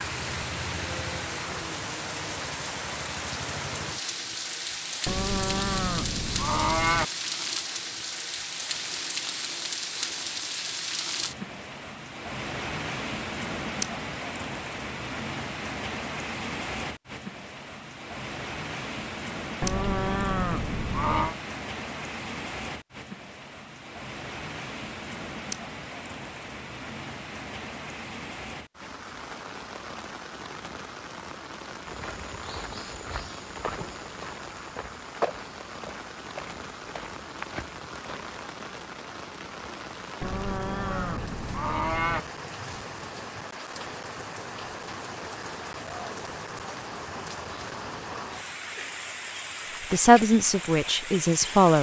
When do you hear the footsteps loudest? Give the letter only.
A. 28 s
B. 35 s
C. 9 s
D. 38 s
B.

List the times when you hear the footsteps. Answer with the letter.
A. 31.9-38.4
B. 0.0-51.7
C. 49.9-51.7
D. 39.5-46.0
A.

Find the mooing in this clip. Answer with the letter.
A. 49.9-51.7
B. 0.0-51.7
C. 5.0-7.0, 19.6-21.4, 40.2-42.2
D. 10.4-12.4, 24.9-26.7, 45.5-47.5
C.